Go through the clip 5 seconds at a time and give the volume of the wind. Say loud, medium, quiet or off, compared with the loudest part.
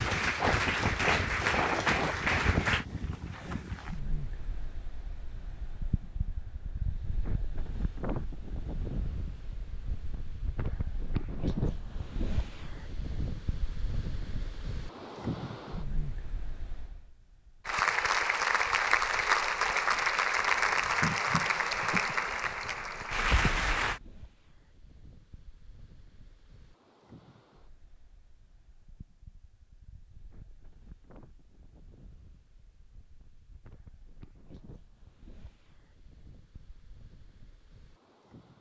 loud, medium, medium, medium, quiet, quiet, quiet, quiet.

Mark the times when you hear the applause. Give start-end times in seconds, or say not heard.
0.0-2.9, 17.6-24.0.